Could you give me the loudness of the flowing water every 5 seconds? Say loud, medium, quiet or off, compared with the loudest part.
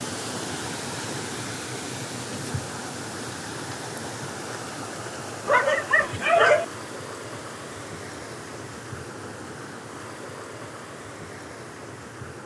loud, loud, medium.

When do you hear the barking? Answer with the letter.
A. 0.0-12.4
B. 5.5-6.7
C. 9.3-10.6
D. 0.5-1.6
B.